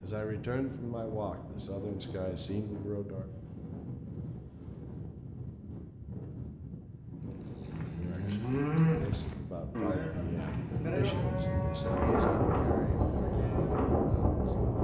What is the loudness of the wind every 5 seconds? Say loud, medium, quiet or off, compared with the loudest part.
quiet, quiet, loud.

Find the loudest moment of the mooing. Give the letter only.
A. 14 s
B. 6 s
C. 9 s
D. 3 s
C.